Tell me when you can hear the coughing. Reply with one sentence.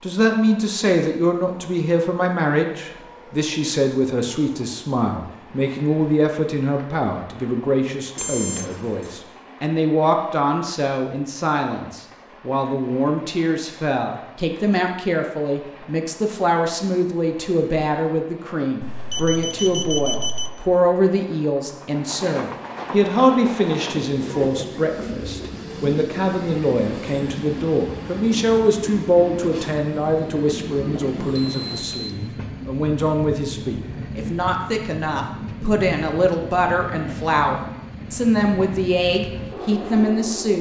You can't hear the coughing here.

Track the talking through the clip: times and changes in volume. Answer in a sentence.
You can hear the talking from 0.0 to 40.5 s, at a steady volume.